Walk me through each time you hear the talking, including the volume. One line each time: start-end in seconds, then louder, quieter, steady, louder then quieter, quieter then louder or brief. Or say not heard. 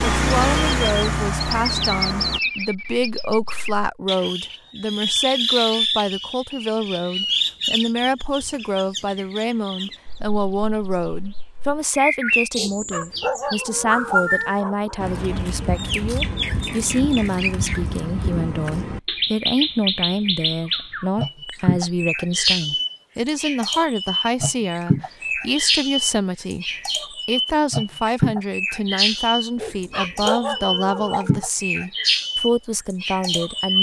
0.1-33.7 steady.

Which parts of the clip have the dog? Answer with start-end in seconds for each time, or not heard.
12.6-15.0, 29.6-31.5.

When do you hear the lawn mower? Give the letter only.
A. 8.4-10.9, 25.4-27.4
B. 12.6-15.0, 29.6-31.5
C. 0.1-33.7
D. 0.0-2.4
D.